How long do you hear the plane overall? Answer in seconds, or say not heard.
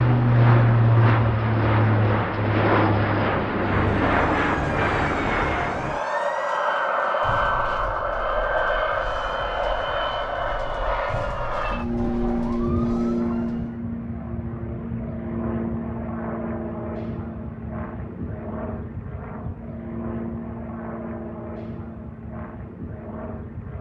24 s.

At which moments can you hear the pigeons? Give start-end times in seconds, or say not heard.
not heard.